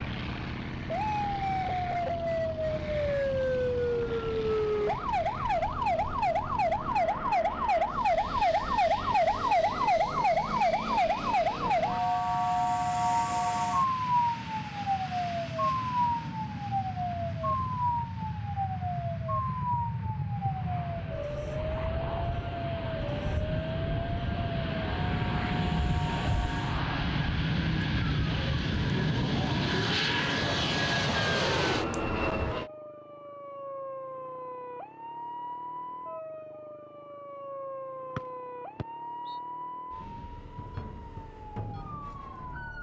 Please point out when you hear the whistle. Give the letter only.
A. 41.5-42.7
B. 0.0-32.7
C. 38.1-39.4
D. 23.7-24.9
C.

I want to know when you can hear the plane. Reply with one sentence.
You can hear the plane from 0.0 to 32.7 s.